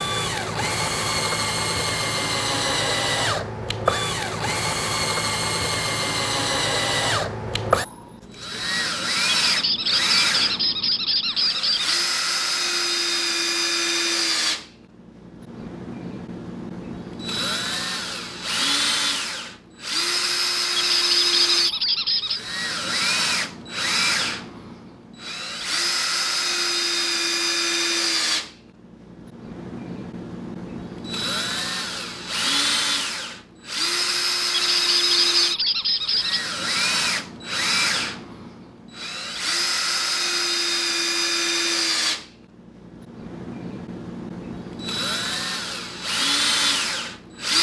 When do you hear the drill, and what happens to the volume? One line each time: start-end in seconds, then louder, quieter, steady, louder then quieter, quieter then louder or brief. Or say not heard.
0.0-47.5 steady.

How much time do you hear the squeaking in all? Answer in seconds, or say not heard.
6 s.